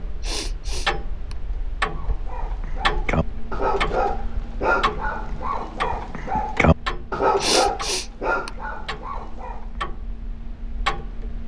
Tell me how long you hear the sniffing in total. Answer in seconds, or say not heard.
2 s.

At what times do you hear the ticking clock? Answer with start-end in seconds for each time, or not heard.
0.0-11.4.